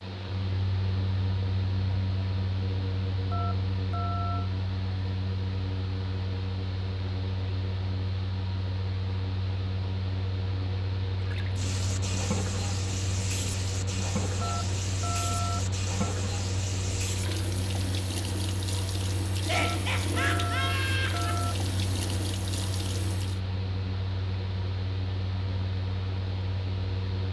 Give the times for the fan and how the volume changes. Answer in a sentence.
You can hear the fan from 0.0 to 27.2 s, at a steady volume.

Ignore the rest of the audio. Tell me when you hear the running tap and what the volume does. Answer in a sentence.
The running tap can be heard from 11.2 to 23.4 s, at a steady volume.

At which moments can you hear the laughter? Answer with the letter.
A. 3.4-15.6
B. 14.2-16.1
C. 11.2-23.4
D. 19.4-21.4
D.